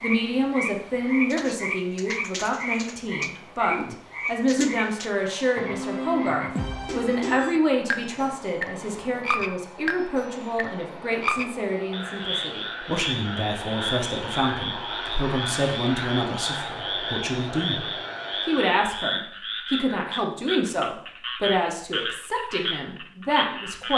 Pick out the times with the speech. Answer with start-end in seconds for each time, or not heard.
0.0-17.9, 18.4-23.9.